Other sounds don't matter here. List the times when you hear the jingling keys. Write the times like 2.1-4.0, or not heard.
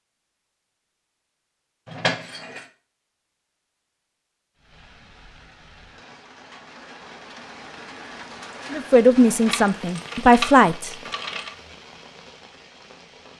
1.9-2.6, 9.4-11.5.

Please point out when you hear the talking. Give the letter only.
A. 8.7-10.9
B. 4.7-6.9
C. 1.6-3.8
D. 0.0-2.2
A.